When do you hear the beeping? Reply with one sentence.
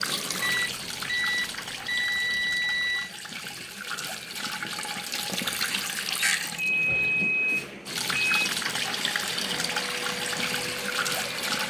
You can hear the beeping from 0.4 to 3.1 s and from 6.5 to 8.5 s.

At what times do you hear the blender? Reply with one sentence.
You can hear the blender from 8.8 to 11.6 s.